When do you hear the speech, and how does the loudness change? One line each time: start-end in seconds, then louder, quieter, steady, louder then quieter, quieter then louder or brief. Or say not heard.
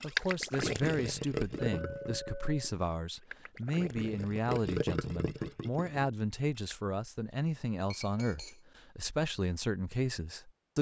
0.0-10.7 steady.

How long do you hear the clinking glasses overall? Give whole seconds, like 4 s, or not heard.
2 s.